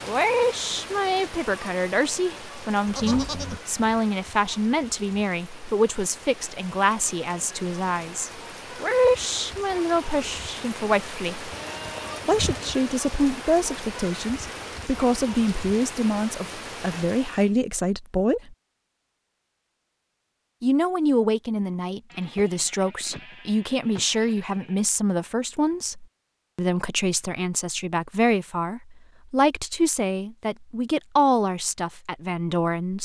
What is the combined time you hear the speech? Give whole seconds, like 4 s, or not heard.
30 s.